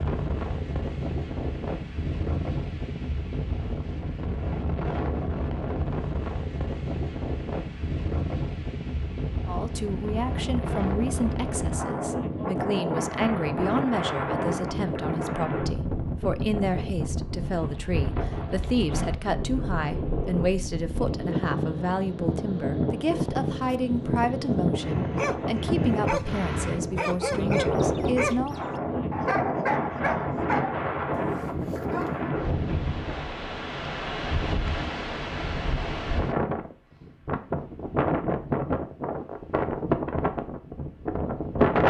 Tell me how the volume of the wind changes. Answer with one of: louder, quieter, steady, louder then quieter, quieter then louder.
steady.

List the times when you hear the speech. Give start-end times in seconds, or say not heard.
9.4-28.6.